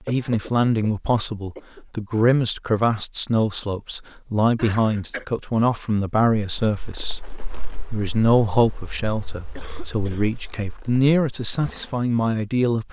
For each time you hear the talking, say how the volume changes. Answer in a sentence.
You can hear the talking from 0.1 to 12.8 s, at a steady volume.